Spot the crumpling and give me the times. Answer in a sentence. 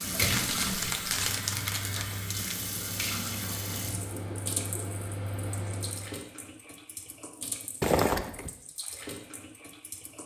You can hear the crumpling from 0.2 to 2.7 s and from 7.8 to 8.5 s.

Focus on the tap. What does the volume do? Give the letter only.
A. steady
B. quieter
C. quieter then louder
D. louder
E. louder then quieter
B.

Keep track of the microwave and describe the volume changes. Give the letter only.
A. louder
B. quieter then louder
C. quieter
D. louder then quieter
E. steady
A.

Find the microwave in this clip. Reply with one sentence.
The microwave can be heard from 0.0 to 6.2 s.